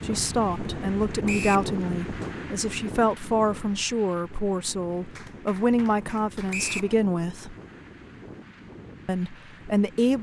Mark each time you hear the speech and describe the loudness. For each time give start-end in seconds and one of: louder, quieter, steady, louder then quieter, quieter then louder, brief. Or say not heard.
0.0-7.5 steady
9.1-10.1 brief.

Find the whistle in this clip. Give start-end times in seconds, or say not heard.
1.2-1.7, 6.5-6.9.